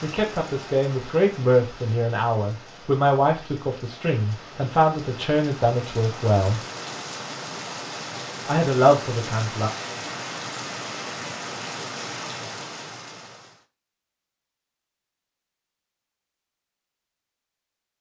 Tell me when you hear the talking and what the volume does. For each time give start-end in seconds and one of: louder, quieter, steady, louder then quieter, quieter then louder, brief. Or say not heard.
0.0-6.6 steady
8.4-9.7 brief.